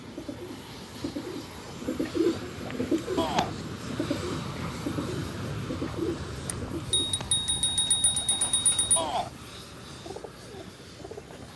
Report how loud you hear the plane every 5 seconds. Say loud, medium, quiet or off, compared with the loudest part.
loud, loud, medium.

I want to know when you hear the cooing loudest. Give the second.
2 s.